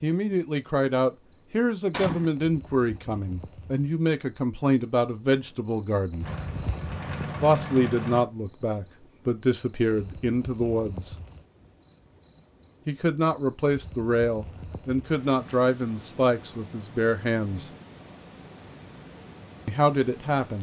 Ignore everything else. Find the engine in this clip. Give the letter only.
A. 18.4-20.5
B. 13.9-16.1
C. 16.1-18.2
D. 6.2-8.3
D.